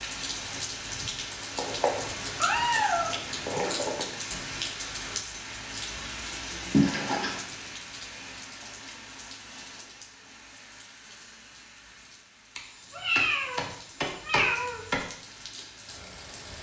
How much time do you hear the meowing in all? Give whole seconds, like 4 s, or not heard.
6 s.